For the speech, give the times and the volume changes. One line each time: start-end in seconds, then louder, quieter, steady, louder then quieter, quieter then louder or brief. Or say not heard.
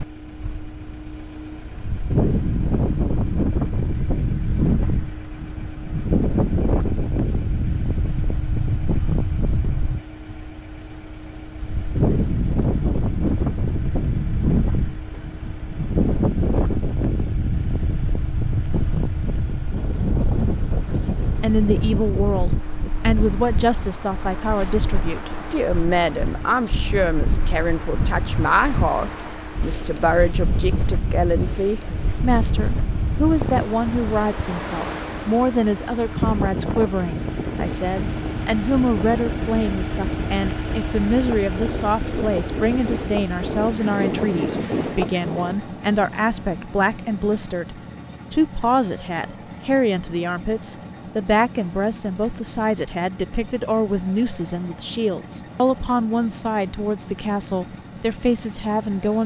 20.9-59.2 steady.